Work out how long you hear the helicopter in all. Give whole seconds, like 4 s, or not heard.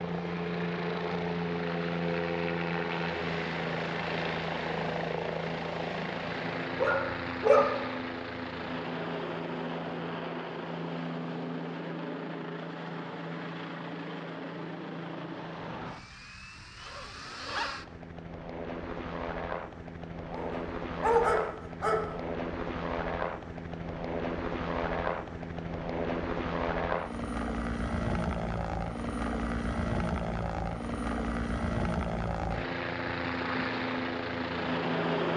35 s.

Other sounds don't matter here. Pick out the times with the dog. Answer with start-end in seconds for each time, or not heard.
6.8-7.7, 20.3-22.0.